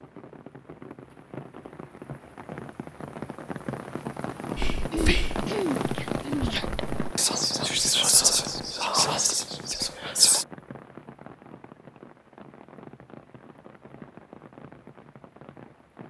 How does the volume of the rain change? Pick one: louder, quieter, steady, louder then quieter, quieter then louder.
louder then quieter.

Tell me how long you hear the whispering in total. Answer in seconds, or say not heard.
6 s.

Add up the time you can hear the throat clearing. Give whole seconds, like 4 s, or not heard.
2 s.